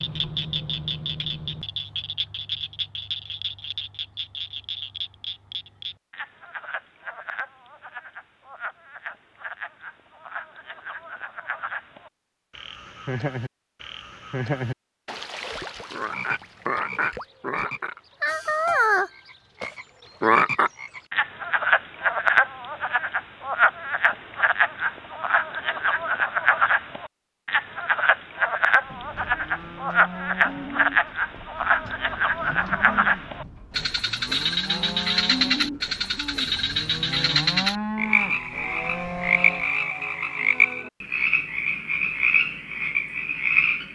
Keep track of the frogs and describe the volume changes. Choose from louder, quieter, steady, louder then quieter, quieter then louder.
louder.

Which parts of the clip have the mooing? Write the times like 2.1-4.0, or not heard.
28.8-39.7.